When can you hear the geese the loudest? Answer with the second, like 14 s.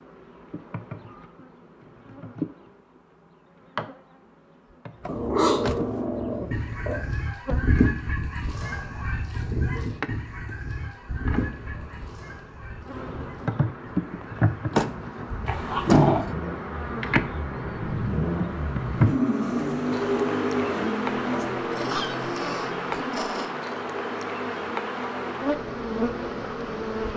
8 s.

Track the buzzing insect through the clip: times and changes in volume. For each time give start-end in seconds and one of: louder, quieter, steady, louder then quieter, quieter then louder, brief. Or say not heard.
0.0-27.1 louder.